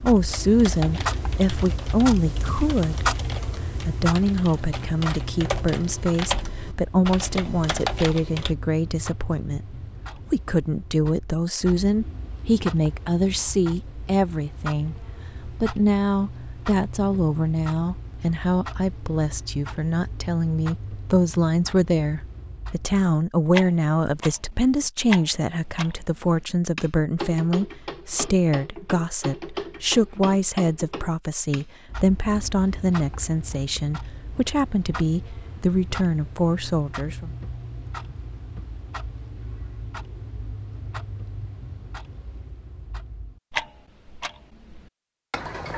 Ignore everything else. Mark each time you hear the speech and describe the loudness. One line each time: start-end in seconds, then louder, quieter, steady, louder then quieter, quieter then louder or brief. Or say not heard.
0.0-37.3 steady.